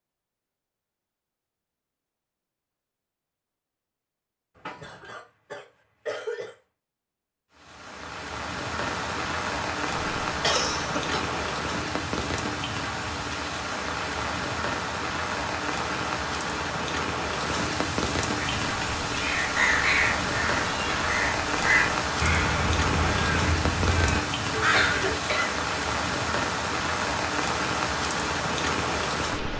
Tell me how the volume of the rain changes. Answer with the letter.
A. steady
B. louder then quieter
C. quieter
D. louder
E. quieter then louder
A.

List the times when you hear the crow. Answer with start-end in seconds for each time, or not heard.
18.4-25.1.